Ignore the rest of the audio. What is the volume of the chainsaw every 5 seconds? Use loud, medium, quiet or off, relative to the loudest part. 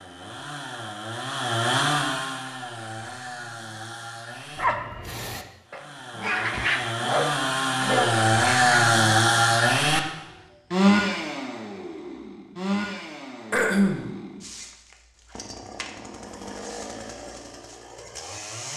medium, loud, medium, quiet.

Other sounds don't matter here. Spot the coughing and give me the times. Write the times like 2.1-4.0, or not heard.
13.5-14.1.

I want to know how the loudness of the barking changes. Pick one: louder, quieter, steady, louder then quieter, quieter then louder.
louder.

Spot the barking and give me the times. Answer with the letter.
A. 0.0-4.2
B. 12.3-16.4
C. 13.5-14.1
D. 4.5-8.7
D.